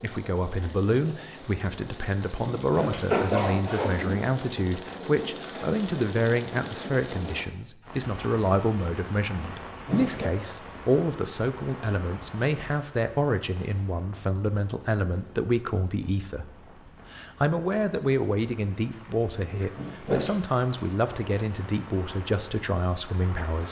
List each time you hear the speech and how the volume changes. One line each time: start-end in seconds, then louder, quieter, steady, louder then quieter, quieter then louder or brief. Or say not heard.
0.0-23.6 steady.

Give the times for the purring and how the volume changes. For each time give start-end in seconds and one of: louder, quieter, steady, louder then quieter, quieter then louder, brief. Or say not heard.
not heard.